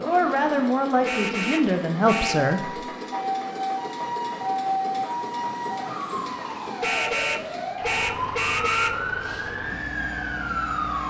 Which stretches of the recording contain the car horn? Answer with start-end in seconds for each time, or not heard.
1.0-2.4, 6.8-9.0.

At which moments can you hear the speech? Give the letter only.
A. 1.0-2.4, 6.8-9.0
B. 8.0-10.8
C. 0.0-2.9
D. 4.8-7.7
C.